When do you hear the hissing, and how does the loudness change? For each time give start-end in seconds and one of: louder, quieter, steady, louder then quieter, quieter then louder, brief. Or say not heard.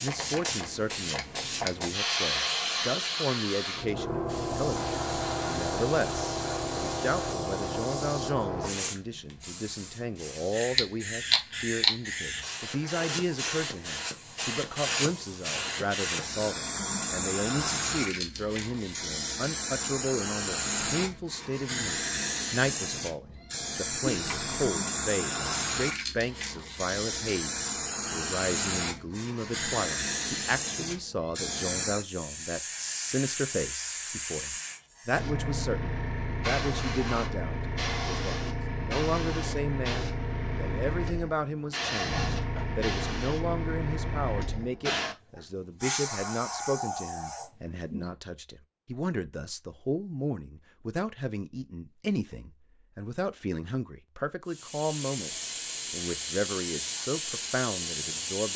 0.0-48.1 steady
54.5-58.5 steady.